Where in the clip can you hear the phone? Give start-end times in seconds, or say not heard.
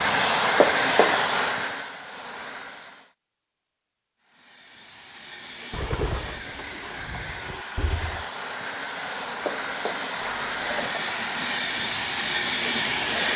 0.6-1.2, 9.4-11.1.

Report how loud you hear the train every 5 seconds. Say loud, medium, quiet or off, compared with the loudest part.
loud, medium, loud.